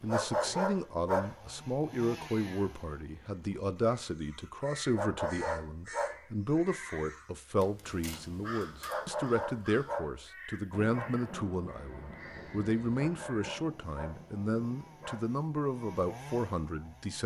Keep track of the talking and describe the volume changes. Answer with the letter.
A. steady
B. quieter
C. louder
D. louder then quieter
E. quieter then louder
A.